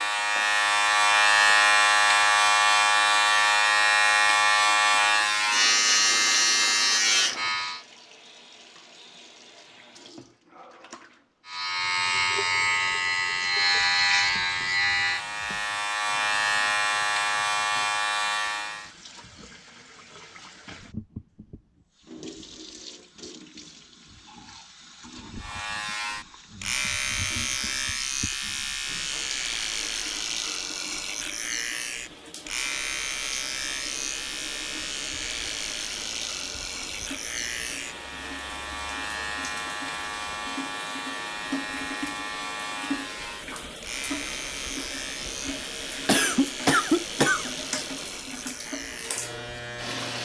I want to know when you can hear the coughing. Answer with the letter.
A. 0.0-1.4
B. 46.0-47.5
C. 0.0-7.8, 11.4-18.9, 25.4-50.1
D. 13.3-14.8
B.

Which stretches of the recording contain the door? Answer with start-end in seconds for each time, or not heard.
not heard.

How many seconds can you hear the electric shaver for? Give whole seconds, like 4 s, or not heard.
40 s.